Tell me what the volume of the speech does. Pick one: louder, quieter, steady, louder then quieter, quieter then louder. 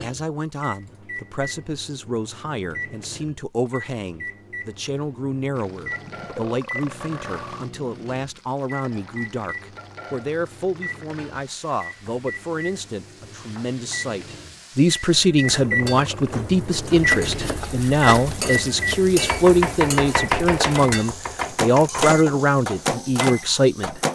louder.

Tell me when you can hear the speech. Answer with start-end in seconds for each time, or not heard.
0.0-24.0.